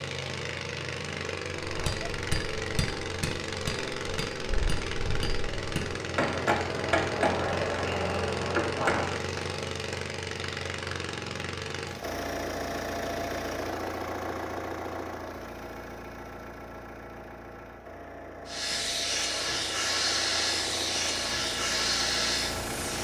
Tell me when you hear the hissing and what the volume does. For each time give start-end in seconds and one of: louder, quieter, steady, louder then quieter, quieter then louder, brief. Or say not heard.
18.4-22.9 steady.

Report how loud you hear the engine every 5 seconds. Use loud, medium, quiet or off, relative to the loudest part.
loud, loud, loud, medium, loud.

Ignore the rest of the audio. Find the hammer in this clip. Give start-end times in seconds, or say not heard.
1.6-9.2.